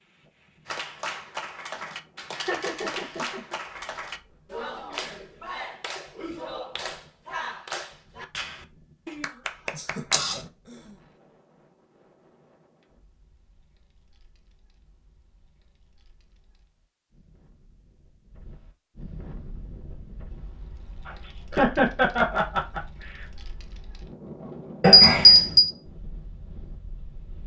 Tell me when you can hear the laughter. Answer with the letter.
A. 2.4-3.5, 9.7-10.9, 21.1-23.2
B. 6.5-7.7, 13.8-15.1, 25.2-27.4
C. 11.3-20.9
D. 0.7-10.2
A.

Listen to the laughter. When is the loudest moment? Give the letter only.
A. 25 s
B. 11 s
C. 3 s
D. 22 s
D.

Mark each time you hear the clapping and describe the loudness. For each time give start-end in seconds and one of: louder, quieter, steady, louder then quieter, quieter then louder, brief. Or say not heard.
0.7-10.2 steady.